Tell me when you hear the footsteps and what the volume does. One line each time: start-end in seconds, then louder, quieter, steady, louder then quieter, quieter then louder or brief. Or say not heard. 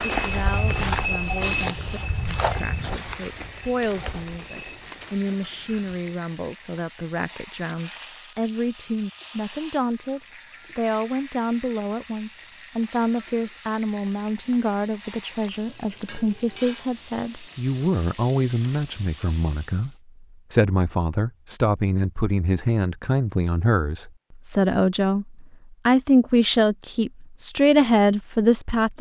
0.0-6.2 quieter.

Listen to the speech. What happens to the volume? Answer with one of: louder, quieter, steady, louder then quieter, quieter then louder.
louder.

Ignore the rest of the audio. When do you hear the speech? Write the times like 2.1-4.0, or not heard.
0.1-28.9.